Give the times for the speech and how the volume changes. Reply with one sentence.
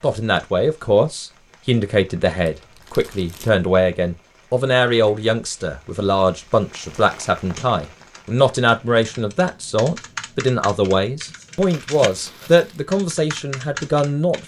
You can hear the speech from 0.0 to 14.4 s, at a steady volume.